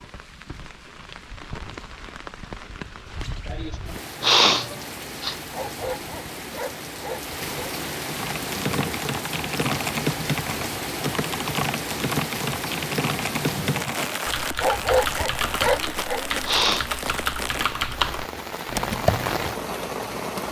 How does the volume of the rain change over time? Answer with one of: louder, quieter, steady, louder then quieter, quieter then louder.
louder.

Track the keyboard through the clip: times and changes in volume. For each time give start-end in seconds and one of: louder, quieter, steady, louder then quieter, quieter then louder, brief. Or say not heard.
8.1-19.4 steady.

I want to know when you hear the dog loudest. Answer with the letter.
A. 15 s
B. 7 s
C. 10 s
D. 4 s
A.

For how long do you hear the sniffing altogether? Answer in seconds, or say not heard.
3 s.